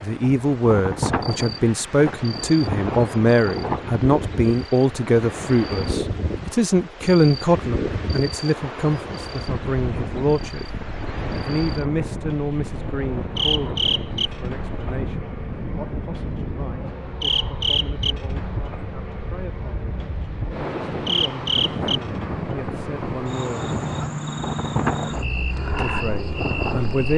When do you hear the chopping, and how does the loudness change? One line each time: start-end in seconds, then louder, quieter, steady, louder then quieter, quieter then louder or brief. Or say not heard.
not heard.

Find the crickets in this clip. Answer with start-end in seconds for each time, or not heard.
0.0-27.1.